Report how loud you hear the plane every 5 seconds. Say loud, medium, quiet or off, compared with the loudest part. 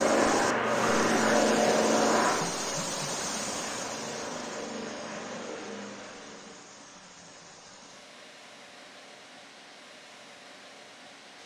loud, quiet, off.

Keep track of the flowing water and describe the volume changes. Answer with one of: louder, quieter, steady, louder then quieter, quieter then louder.
quieter.